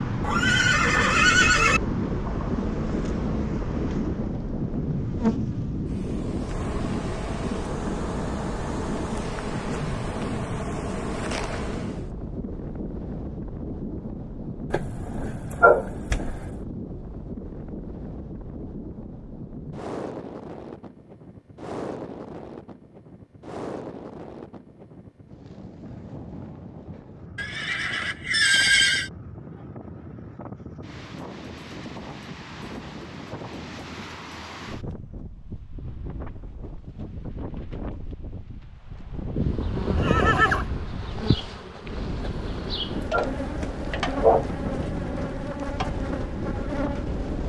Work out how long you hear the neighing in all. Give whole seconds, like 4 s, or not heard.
5 s.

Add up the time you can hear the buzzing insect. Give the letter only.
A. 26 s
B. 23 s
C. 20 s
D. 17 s
C.